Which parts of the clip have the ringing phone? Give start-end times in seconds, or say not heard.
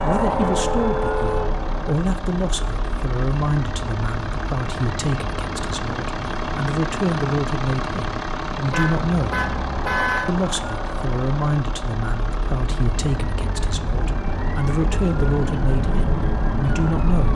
not heard.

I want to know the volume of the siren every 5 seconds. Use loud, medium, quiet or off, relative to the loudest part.
loud, medium, medium, loud.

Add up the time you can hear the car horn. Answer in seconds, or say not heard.
3 s.